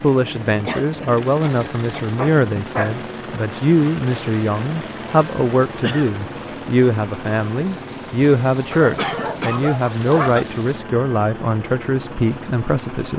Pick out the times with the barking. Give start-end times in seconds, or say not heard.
2.1-3.0, 8.7-10.4.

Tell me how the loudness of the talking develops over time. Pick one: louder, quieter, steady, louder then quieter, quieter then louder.
steady.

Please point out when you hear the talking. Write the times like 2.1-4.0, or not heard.
0.0-13.1.